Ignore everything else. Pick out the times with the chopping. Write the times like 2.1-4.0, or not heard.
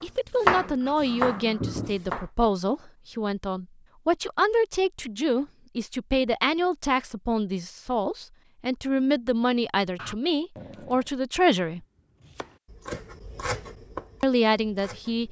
0.0-2.2, 12.2-15.2.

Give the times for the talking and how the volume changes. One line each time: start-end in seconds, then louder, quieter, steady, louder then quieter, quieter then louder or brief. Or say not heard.
0.0-11.8 steady
14.2-15.2 brief.